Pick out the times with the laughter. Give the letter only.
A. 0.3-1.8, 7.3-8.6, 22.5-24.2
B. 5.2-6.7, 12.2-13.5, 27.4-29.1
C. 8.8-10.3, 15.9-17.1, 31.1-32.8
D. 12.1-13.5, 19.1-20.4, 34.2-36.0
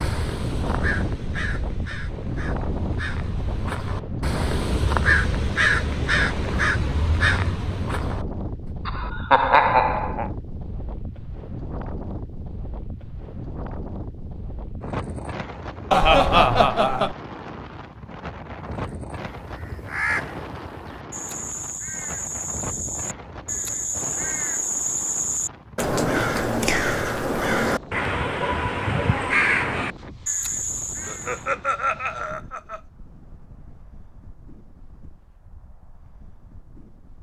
C.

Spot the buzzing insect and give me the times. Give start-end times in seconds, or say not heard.
not heard.